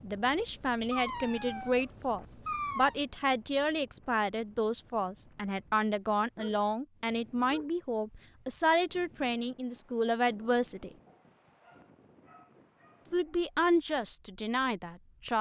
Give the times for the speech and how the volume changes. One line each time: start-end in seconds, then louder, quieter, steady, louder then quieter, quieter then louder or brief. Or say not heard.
0.0-10.9 steady
13.1-15.3 brief.